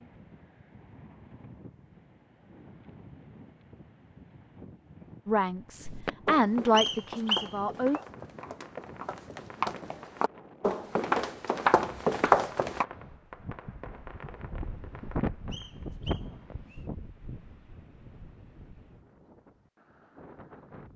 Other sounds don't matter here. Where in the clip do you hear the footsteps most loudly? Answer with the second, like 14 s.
12 s.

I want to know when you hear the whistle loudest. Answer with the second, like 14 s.
7 s.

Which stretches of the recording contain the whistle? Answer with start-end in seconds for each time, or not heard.
6.8-7.5, 15.5-16.9.